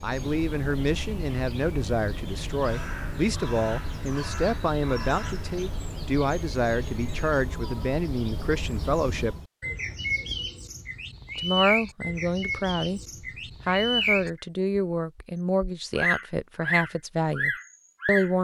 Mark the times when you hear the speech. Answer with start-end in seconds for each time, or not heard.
0.0-9.3, 11.3-13.0, 13.7-18.3.